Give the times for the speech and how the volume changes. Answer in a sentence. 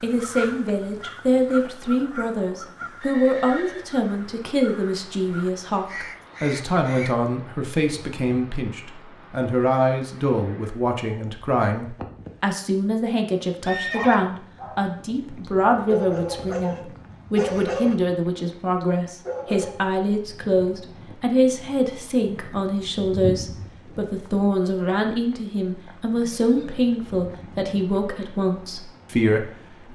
The speech can be heard from 0.0 to 29.9 s, at a steady volume.